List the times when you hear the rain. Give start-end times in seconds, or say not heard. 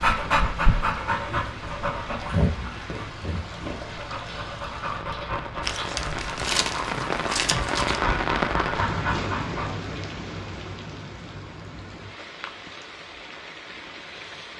0.0-14.5.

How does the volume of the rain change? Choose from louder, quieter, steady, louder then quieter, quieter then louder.
louder then quieter.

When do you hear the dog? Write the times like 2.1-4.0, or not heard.
0.0-9.8.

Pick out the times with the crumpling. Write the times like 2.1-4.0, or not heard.
5.6-8.0.